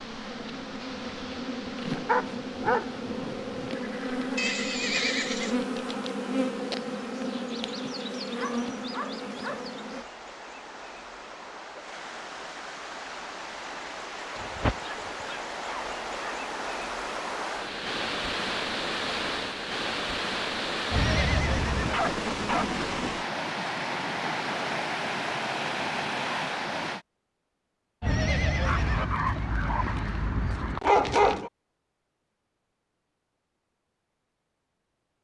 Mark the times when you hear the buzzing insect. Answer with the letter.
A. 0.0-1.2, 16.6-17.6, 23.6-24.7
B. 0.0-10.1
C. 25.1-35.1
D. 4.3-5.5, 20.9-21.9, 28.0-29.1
B.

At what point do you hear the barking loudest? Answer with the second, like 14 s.
31 s.